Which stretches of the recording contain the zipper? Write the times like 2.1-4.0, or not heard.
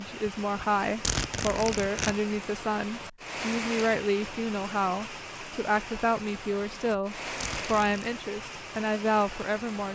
0.2-2.1, 6.6-8.1.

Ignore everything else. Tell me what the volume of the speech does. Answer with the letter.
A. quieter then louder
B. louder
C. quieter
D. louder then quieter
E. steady
E.